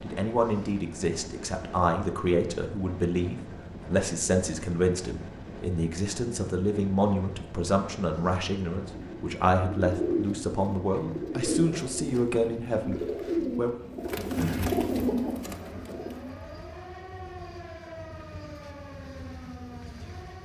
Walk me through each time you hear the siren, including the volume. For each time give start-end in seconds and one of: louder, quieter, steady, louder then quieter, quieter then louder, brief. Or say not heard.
15.1-20.3 steady.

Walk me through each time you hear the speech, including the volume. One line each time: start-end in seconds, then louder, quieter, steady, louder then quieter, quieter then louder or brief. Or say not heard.
0.0-13.8 steady.